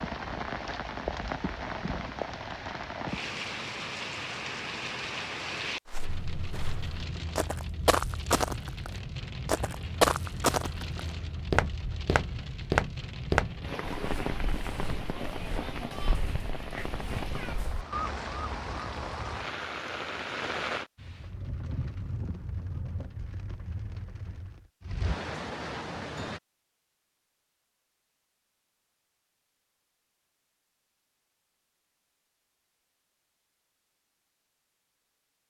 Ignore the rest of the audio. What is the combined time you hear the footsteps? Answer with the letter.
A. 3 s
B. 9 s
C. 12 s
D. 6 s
C.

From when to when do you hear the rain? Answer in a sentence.
You can hear the rain from 0.0 to 26.4 s.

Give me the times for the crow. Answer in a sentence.
You can't hear the crow here.